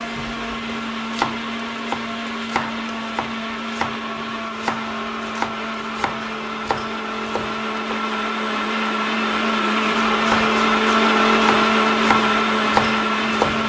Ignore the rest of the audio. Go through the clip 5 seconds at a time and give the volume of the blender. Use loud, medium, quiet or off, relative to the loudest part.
medium, medium, loud.